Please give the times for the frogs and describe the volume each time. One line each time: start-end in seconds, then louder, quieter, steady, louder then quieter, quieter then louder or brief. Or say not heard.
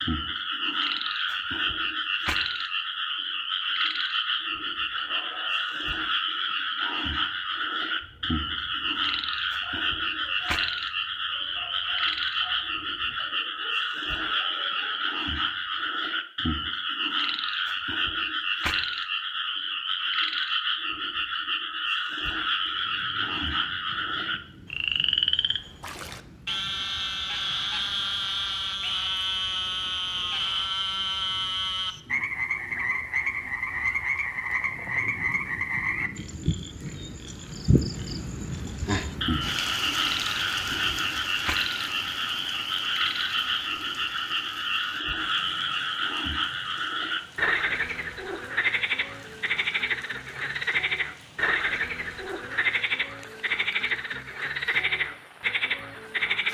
0.0-56.4 steady.